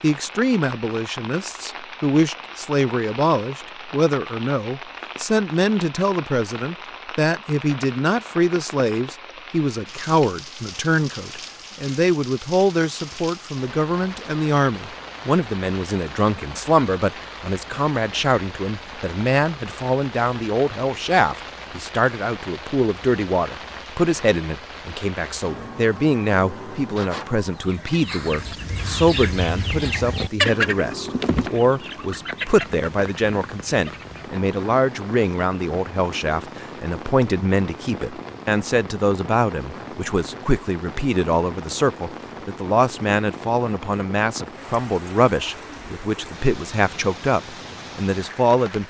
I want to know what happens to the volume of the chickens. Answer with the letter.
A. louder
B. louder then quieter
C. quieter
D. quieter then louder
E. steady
B.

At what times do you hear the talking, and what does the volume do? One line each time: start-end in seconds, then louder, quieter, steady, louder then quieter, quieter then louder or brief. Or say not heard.
0.0-48.8 steady.